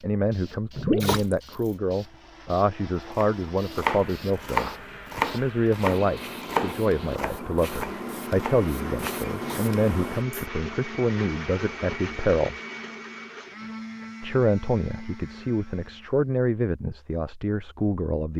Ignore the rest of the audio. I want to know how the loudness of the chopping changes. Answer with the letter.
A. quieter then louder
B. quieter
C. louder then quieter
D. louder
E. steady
B.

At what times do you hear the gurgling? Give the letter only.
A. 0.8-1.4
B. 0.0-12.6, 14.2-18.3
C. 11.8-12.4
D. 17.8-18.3
A.